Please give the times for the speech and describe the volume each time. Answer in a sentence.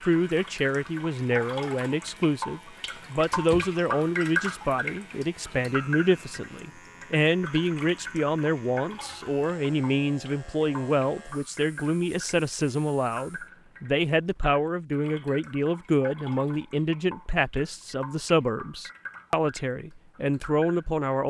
You can hear the speech from 0.1 to 21.2 s, at a steady volume.